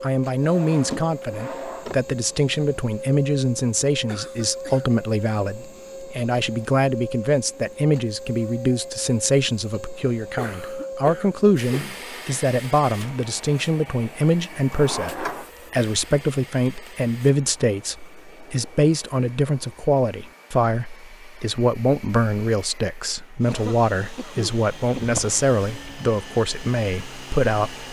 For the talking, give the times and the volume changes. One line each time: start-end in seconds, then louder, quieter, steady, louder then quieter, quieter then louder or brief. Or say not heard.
0.0-27.8 steady.